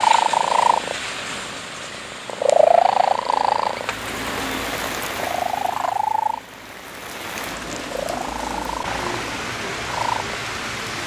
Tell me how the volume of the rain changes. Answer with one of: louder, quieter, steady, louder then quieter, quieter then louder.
quieter then louder.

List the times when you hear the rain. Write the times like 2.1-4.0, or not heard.
3.9-11.0.